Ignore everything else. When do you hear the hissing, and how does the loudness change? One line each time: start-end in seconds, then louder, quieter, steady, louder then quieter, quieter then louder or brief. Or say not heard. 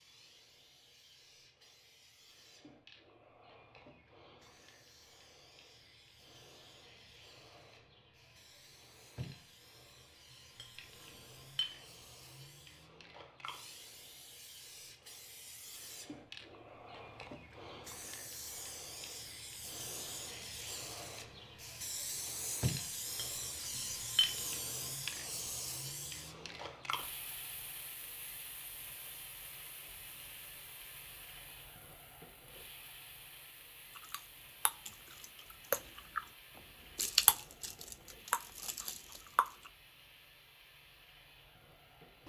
0.0-42.2 louder then quieter.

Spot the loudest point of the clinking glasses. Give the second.
24 s.